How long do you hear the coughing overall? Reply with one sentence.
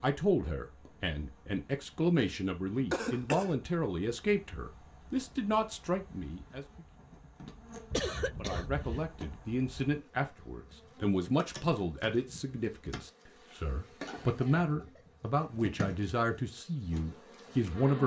The coughing can be heard for 3 seconds in total.